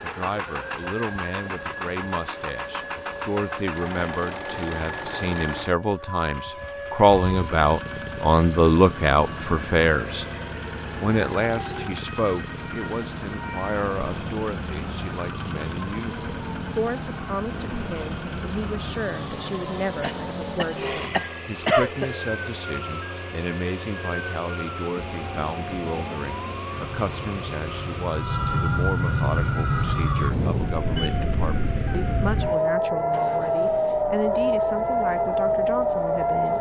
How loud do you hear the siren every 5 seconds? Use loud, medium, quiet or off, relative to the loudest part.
quiet, quiet, quiet, quiet, quiet, medium, loud, loud.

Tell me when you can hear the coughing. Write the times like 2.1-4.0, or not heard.
20.0-22.1.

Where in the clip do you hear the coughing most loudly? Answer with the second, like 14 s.
22 s.